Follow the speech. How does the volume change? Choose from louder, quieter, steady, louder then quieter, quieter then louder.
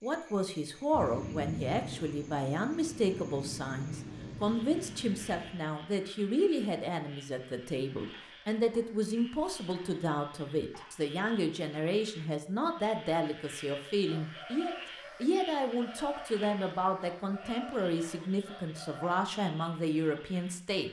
steady.